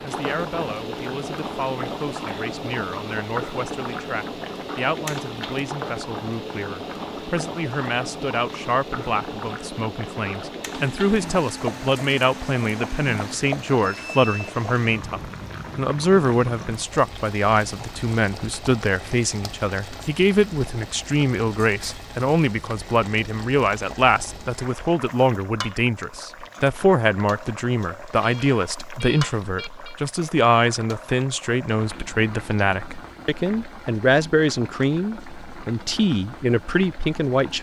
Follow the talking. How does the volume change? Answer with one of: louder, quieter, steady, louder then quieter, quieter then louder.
louder.